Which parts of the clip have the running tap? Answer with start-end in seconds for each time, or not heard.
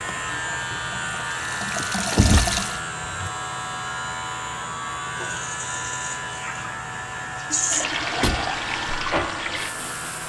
0.0-2.8, 5.0-10.2.